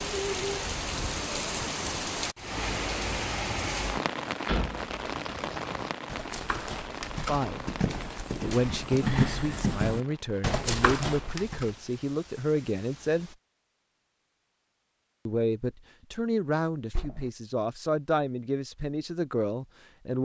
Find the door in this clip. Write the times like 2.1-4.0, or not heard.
4.5-5.0, 16.9-17.3.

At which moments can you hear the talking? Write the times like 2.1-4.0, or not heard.
7.2-7.8, 8.4-13.3, 15.2-20.2.